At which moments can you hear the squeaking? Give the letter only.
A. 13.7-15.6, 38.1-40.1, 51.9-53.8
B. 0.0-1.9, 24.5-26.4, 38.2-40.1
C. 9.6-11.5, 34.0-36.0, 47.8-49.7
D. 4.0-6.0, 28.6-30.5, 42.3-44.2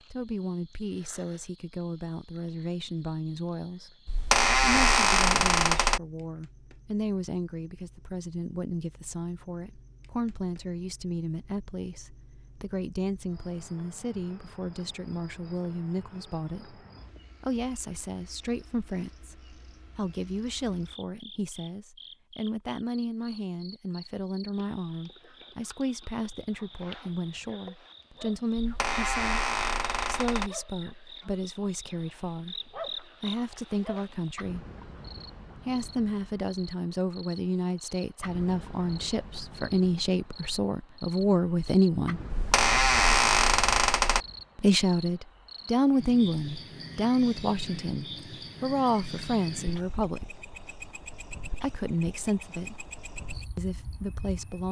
D.